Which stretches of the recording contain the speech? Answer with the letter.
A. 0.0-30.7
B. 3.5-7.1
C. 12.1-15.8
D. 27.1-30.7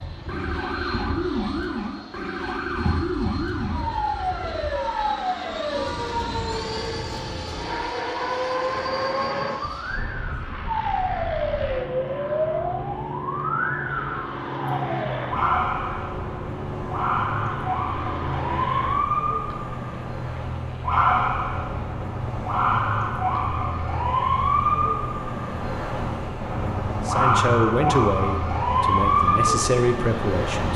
D.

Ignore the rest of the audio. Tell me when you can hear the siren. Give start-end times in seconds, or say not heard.
0.0-30.7.